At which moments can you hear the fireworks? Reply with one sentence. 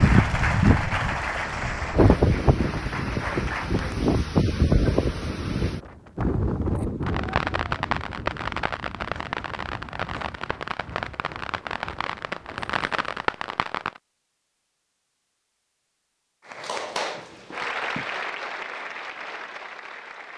The fireworks can be heard from 7.0 to 14.0 s.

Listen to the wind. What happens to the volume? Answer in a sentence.
The volume of the wind goes down.